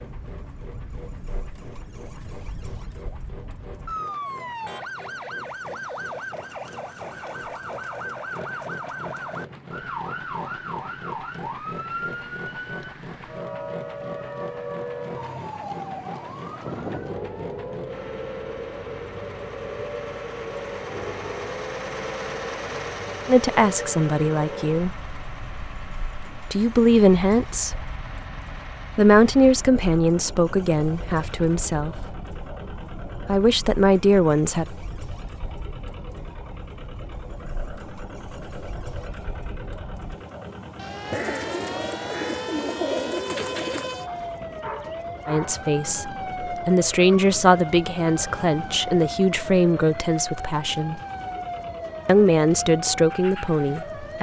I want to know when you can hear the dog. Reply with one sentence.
You can hear the dog from 44.0 to 45.6 s.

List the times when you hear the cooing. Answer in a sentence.
The cooing can be heard from 41.1 to 44.0 s.